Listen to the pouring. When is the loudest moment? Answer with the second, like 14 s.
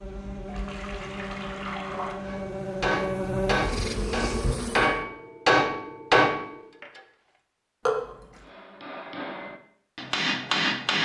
8 s.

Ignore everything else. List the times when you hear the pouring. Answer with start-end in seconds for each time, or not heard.
0.5-2.2, 7.8-8.4.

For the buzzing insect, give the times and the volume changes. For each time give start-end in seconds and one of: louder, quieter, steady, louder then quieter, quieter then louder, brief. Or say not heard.
0.0-5.0 louder.